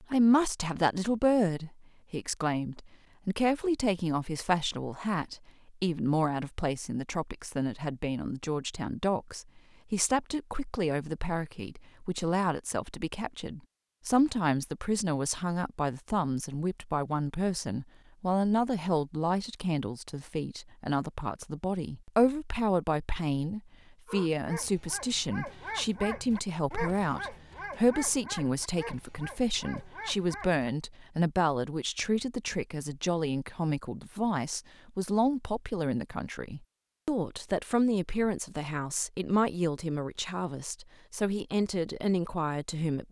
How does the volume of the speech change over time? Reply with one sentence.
The volume of the speech stays about the same.